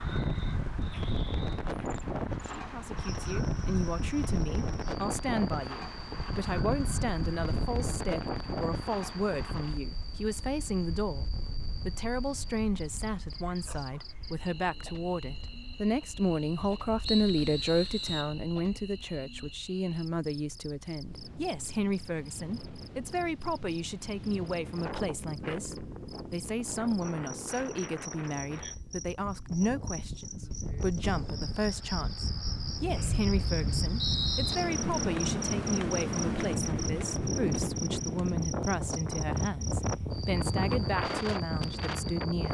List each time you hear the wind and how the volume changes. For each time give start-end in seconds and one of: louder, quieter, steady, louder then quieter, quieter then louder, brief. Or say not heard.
0.0-42.4 quieter then louder.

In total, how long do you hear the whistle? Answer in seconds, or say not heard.
3 s.